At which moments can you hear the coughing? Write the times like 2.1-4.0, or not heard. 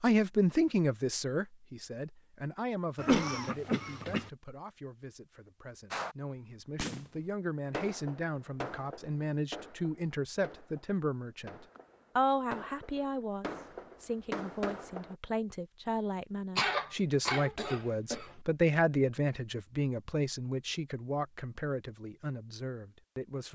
3.0-4.3, 16.6-18.4.